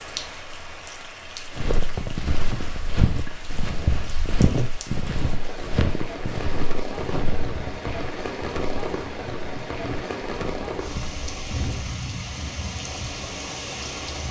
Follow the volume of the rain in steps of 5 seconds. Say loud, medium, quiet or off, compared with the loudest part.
medium, loud, loud.